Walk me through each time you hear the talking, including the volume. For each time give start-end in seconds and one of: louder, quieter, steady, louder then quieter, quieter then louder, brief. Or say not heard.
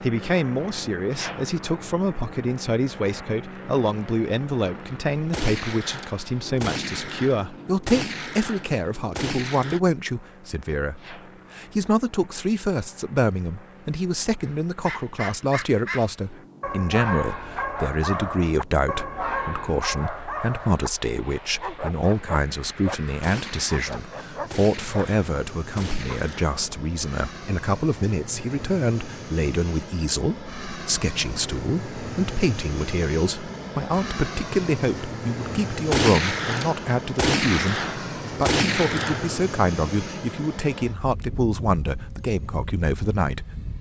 0.0-43.6 steady.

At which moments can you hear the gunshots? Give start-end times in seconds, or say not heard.
5.3-9.8, 23.2-26.6, 35.9-39.5.